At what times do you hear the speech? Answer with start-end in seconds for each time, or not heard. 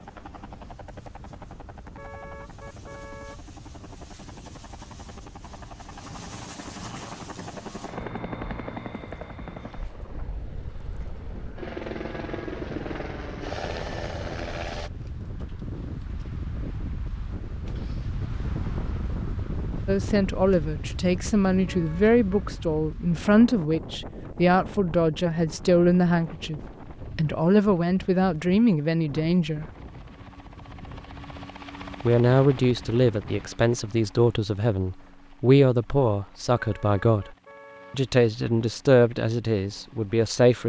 19.9-29.6, 32.0-37.2, 37.9-40.6.